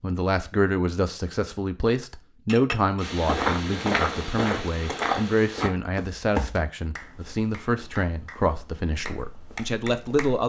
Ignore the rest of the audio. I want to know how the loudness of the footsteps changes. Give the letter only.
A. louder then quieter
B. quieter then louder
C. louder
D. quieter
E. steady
D.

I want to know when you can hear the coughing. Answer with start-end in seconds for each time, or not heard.
not heard.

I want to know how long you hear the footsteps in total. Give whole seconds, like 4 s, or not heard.
7 s.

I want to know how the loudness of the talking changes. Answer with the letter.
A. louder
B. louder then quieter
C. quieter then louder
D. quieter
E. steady
E.